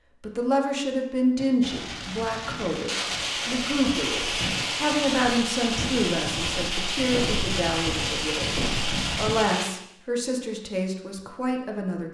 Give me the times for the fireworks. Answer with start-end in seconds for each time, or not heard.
1.4-9.7.